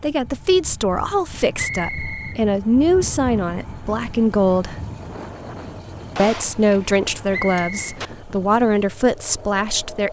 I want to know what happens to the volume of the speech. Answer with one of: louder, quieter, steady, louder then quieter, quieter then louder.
steady.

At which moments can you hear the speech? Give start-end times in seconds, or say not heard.
0.0-4.8, 6.2-10.0.